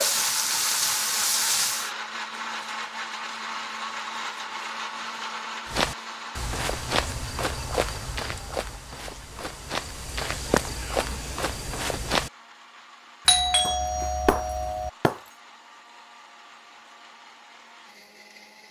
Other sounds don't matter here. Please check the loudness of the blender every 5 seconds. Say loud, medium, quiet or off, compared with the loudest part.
loud, medium, quiet, quiet.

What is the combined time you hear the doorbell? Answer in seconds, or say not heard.
2 s.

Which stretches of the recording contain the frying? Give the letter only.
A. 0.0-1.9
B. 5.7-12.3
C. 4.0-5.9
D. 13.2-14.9
A.